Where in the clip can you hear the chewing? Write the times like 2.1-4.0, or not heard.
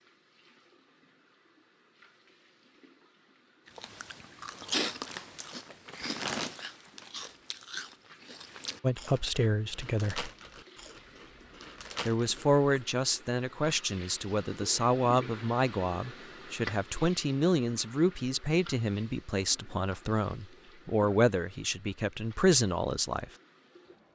3.6-12.8.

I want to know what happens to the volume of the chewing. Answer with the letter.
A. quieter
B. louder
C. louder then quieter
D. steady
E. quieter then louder
A.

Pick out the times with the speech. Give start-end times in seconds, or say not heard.
8.8-10.3, 12.1-23.2.